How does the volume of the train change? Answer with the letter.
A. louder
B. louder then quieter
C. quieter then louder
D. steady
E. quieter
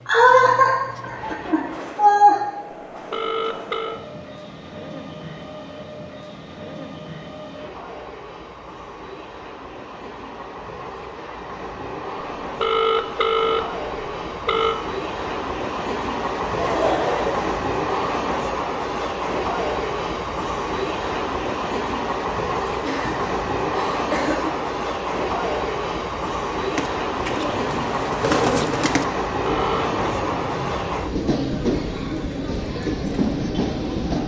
A.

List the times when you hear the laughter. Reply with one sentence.
The laughter can be heard from 0.1 to 2.4 s, from 16.6 to 18.0 s and from 22.8 to 24.6 s.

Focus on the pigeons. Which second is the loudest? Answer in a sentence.
The loudest moment of the pigeons is at 28 seconds.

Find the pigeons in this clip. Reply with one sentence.
You can hear the pigeons from 26.8 to 34.1 s.